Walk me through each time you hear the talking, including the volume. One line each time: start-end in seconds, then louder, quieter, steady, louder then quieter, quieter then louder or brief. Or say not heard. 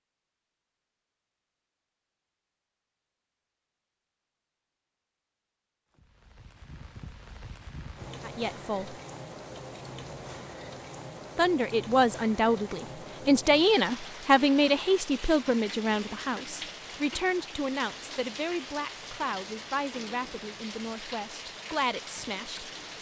8.2-9.0 brief
11.3-22.9 quieter.